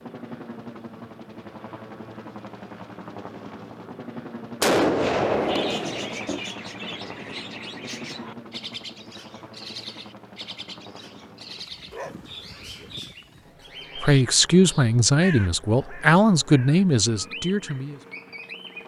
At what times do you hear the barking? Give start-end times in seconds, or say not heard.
11.9-13.0.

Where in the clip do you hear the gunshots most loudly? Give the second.
5 s.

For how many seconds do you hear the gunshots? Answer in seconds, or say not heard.
2 s.